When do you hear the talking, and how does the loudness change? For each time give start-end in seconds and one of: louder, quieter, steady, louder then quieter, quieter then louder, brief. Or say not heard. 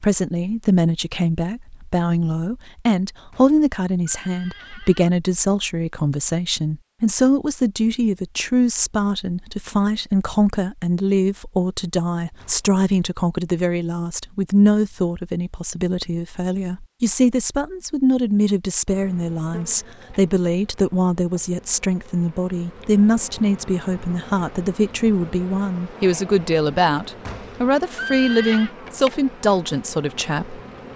0.0-30.6 steady.